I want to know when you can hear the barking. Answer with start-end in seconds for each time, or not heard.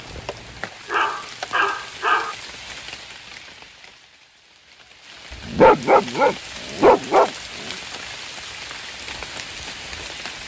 0.9-2.4, 5.5-7.3.